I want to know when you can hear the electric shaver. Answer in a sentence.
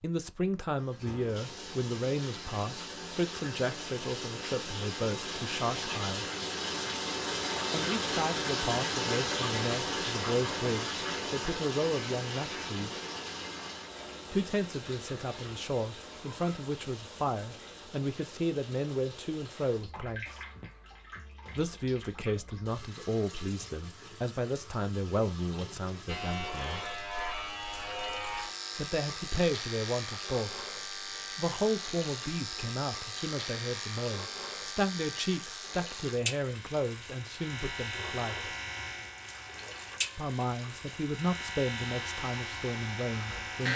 The electric shaver can be heard from 26.1 to 43.7 s.